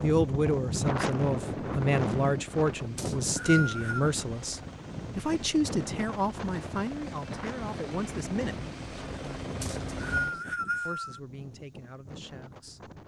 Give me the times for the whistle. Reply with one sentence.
You can hear the whistle from 3.0 to 4.1 s and from 9.6 to 11.2 s.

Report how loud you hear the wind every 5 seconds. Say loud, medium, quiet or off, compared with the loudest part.
loud, medium, quiet.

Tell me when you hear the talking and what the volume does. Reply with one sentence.
You can hear the talking from 0.0 to 12.9 s, getting quieter.